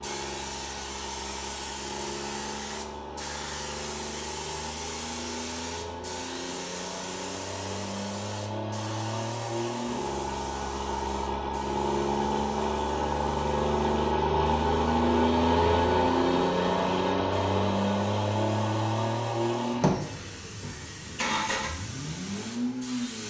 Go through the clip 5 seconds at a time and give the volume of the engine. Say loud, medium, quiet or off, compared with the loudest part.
quiet, medium, loud, loud, medium.